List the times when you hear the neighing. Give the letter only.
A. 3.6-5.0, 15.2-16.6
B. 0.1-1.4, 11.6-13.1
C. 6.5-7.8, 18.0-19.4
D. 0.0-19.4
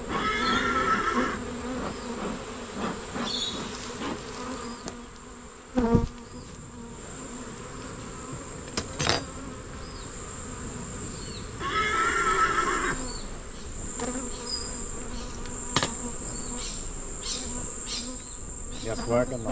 B.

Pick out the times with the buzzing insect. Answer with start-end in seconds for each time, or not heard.
0.0-19.4.